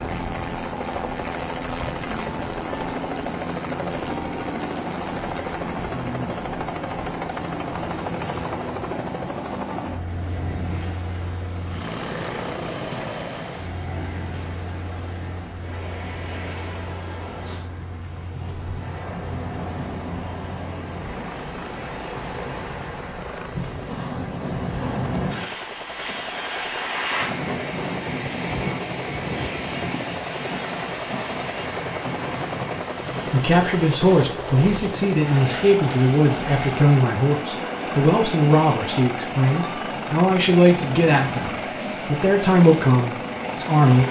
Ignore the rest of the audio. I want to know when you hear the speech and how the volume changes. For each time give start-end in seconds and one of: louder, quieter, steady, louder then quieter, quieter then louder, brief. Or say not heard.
33.3-44.0 steady.